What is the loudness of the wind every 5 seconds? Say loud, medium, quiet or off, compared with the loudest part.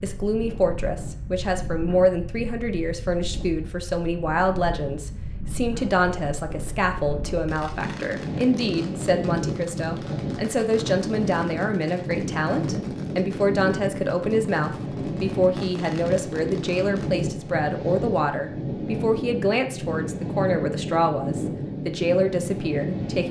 medium, loud, loud, loud, loud.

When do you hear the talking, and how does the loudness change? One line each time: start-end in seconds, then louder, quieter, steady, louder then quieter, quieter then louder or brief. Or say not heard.
0.0-23.2 steady.